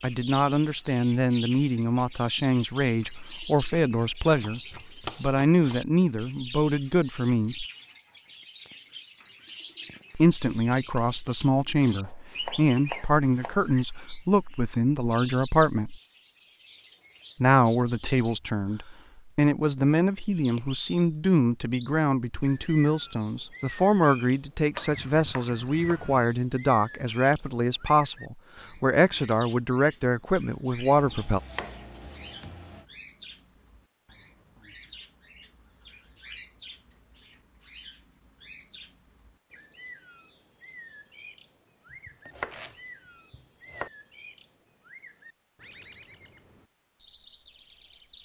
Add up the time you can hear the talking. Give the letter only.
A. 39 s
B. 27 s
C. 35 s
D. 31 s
B.